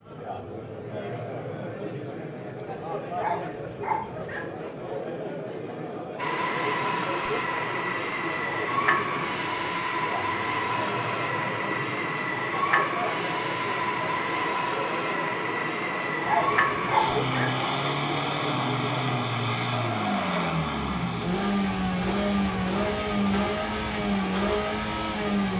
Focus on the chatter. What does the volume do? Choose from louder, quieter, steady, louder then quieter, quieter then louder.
steady.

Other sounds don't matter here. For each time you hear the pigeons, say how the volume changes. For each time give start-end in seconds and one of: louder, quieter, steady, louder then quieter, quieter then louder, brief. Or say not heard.
not heard.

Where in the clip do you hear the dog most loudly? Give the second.
17 s.